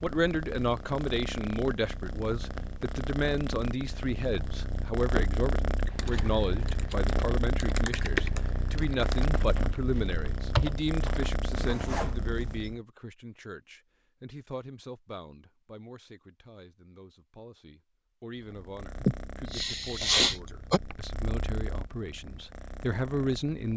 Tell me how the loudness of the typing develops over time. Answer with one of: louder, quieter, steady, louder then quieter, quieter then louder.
louder then quieter.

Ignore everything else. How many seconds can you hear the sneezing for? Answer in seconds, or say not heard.
2 s.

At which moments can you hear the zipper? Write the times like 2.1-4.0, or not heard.
11.5-12.7.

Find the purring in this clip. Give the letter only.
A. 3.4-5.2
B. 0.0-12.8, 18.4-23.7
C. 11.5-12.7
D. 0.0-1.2
B.